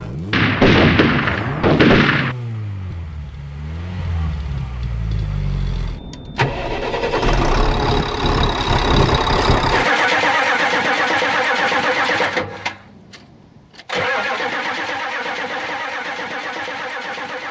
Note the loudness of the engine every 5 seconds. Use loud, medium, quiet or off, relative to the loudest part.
medium, loud, loud, medium.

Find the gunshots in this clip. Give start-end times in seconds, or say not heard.
0.3-2.4.